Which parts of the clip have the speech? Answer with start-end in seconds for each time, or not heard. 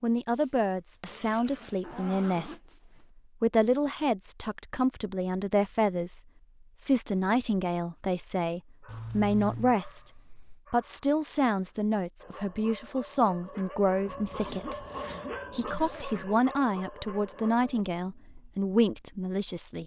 0.0-2.8, 3.4-6.2, 6.8-14.8, 15.5-19.8.